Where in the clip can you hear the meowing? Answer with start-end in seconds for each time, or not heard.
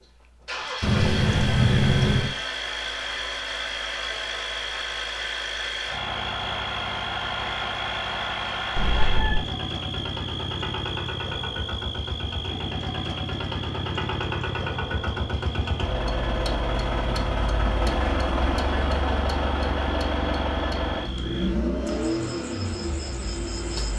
0.8-2.3, 8.8-9.4, 21.1-22.1.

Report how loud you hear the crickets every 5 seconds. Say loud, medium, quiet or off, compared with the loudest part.
loud, loud, loud, medium, loud.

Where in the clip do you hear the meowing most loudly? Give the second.
2 s.